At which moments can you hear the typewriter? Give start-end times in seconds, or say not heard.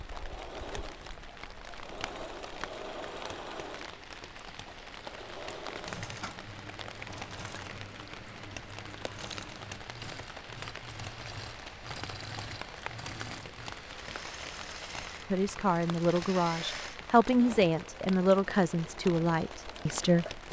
not heard.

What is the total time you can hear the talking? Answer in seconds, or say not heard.
5 s.